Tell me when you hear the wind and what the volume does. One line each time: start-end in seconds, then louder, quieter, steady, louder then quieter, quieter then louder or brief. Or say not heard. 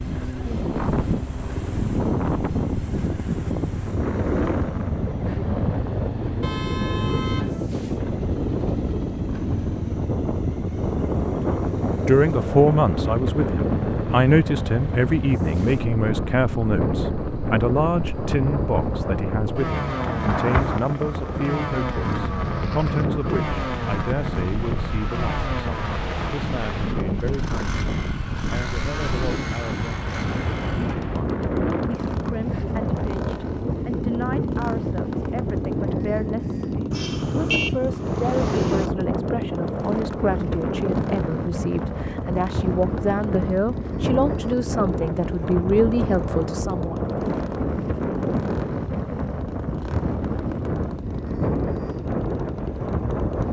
0.0-53.4 steady.